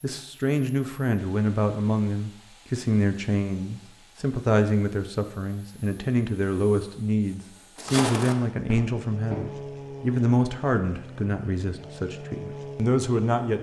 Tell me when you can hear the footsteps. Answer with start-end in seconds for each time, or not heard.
7.8-9.5.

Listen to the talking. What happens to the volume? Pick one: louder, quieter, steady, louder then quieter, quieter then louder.
steady.